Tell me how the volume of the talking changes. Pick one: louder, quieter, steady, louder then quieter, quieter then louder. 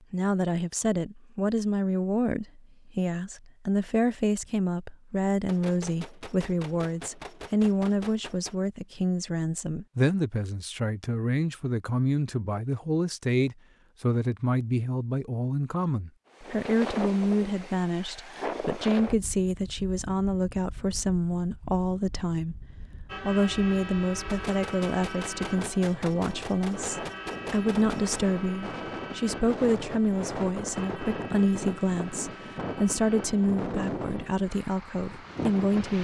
steady.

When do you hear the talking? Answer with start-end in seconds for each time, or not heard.
0.1-35.9.